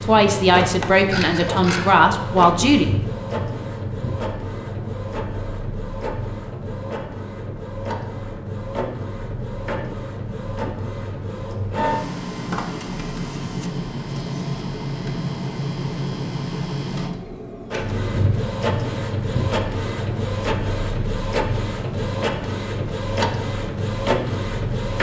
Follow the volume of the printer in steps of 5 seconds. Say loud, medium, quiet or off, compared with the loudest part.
loud, medium, loud, loud, loud.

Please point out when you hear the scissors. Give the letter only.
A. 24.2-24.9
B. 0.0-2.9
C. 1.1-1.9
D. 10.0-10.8
C.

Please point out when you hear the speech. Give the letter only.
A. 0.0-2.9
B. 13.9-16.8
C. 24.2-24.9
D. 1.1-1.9
A.